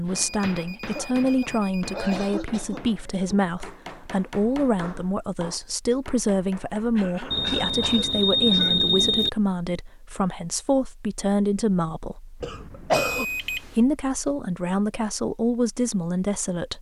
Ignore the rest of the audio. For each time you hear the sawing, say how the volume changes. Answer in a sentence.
The sawing can't be heard in this clip.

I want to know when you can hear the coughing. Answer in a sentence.
You can hear the coughing from 0.8 to 3.4 s, from 7.0 to 8.8 s and from 12.4 to 13.2 s.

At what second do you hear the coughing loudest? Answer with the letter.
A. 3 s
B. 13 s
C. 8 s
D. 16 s
B.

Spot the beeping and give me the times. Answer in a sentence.
You can hear the beeping from 0.2 to 2.1 s, from 7.3 to 9.3 s and from 13.0 to 13.8 s.